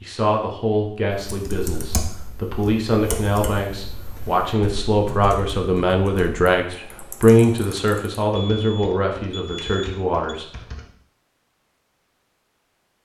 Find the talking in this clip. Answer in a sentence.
The talking can be heard from 0.0 to 10.5 s.